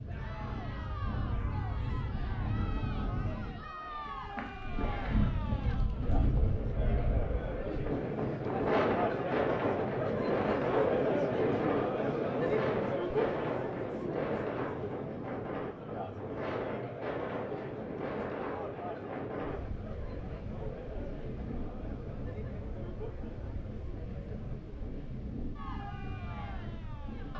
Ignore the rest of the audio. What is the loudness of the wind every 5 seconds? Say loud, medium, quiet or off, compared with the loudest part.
medium, loud, loud, medium, medium, medium.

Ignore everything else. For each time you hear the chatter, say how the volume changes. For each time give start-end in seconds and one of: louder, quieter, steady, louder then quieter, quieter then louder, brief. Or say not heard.
0.1-27.3 louder then quieter.